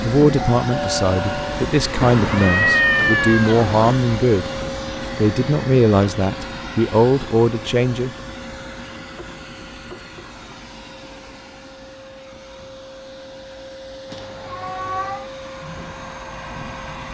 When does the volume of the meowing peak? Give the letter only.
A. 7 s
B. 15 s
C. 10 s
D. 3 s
D.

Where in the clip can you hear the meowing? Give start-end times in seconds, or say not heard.
2.0-4.0, 14.1-15.2.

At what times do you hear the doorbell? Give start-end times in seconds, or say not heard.
0.6-1.8.